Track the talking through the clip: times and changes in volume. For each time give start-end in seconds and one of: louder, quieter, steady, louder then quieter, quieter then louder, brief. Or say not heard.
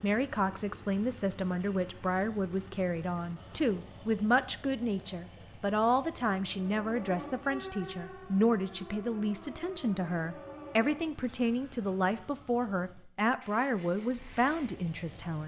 0.0-15.4 steady.